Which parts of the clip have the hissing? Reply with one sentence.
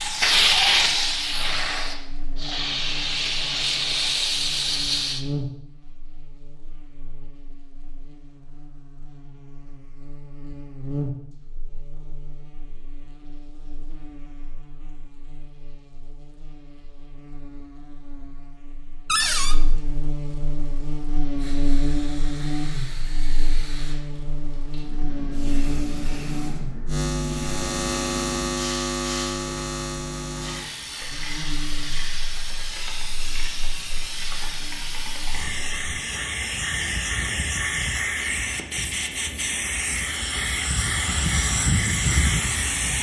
You can hear the hissing from 0.0 to 5.2 s and from 20.6 to 42.9 s.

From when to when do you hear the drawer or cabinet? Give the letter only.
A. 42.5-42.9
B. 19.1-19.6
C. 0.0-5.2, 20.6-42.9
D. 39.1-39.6
B.